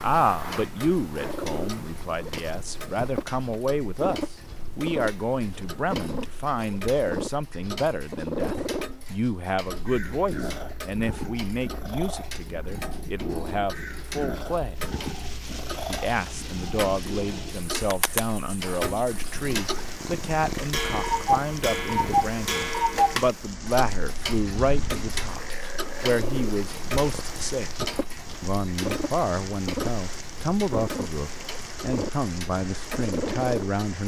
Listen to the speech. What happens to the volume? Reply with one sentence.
The loudness of the speech stays about the same.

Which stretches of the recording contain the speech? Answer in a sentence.
The speech can be heard from 0.0 to 14.8 s, from 15.8 to 27.8 s and from 28.4 to 34.0 s.